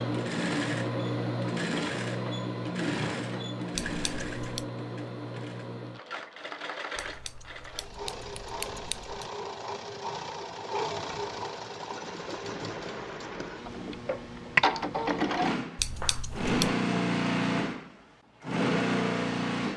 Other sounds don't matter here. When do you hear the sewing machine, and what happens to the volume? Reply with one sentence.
You can hear the sewing machine from 0.0 to 19.7 s, getting quieter then louder.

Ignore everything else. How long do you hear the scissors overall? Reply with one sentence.
The scissors can be heard for 4 seconds in total.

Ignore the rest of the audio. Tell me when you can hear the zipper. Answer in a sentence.
You can't hear the zipper here.